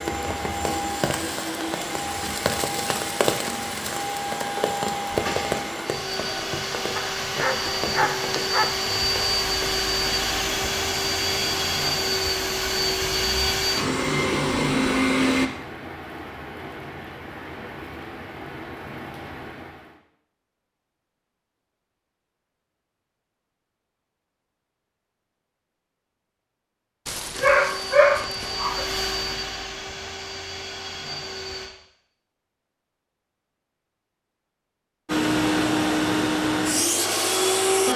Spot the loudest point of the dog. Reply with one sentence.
The volume of the dog peaks at 28 seconds.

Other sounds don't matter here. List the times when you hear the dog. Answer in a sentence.
You can hear the dog from 7.0 to 8.7 s and from 27.1 to 28.9 s.